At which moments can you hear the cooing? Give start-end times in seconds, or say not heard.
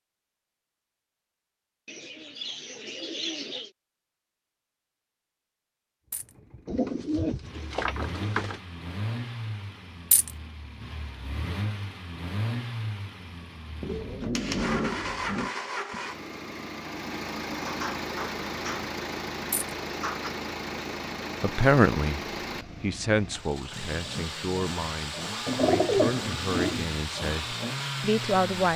1.9-3.7, 6.7-8.6, 13.8-15.5, 17.5-18.9, 19.9-20.4, 25.4-26.9.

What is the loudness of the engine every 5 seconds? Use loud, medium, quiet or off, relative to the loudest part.
off, medium, loud, loud, loud, loud.